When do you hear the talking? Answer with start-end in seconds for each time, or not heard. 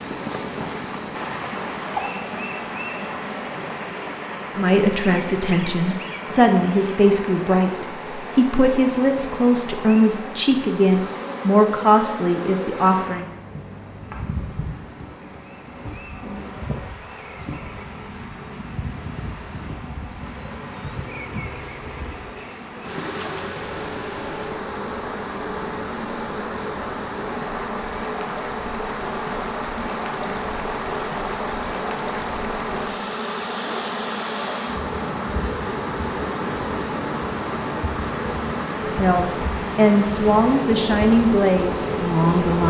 4.5-13.2, 38.9-42.6.